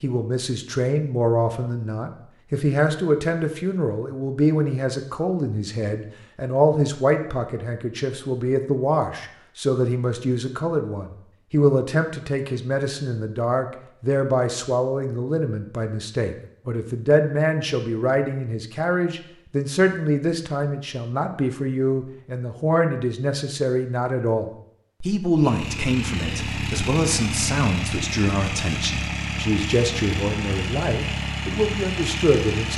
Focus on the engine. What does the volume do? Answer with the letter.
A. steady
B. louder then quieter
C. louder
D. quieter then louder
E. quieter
A.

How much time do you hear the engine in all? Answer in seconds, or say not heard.
7 s.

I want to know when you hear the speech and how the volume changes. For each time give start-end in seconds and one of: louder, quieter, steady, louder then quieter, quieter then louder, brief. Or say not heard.
0.0-32.7 steady.